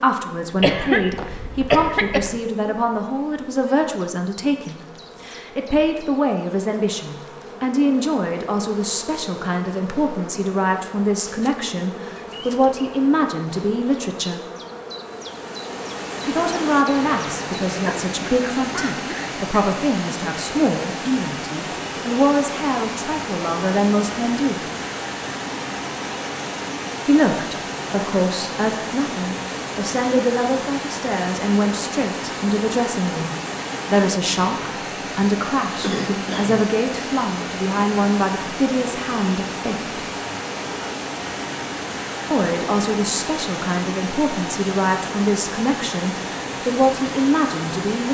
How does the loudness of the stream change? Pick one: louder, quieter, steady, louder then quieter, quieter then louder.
steady.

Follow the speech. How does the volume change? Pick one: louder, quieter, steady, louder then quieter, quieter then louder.
steady.